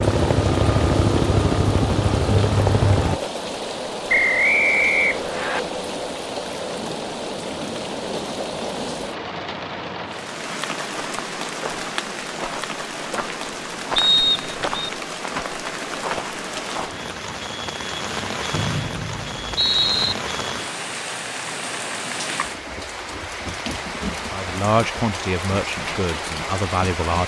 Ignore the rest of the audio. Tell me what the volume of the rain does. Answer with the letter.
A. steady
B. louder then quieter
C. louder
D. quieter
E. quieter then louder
A.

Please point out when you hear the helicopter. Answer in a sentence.
The helicopter can be heard from 0.0 to 3.2 s.